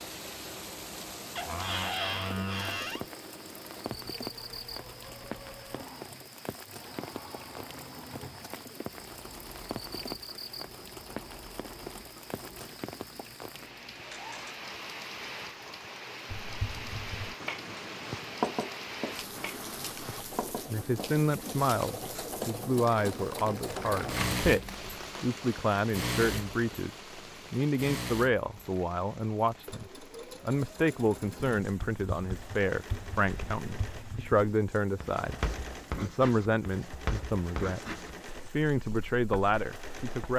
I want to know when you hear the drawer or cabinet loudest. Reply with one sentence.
The volume of the drawer or cabinet peaks at 2 seconds.